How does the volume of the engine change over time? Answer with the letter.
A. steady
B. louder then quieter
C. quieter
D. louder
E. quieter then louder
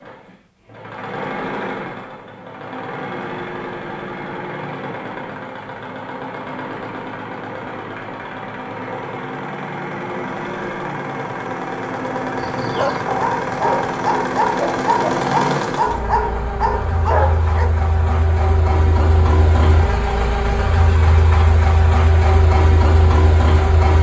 D.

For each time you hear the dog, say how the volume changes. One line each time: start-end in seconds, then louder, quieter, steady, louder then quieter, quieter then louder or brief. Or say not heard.
12.4-17.7 steady.